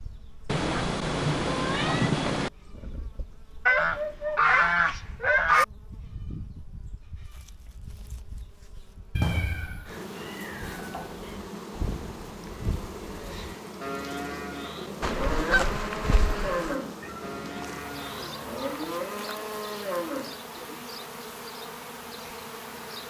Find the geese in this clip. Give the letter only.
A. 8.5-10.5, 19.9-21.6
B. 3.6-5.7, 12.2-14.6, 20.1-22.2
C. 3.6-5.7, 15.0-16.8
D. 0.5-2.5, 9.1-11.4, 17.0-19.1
C.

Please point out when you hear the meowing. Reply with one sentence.
You can hear the meowing from 0.5 to 2.5 s, from 9.1 to 11.4 s and from 17.0 to 19.1 s.